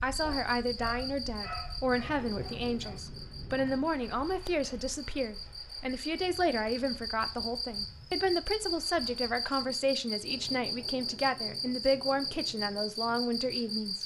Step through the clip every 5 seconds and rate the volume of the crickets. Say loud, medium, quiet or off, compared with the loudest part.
medium, loud, loud.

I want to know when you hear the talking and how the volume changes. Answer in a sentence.
You can hear the talking from 0.0 to 14.0 s, at a steady volume.